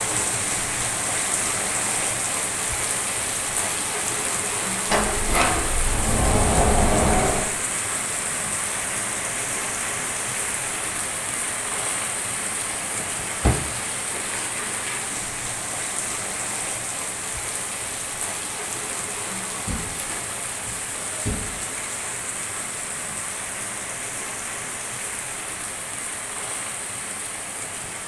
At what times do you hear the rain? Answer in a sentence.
You can hear the rain from 0.0 to 28.0 s.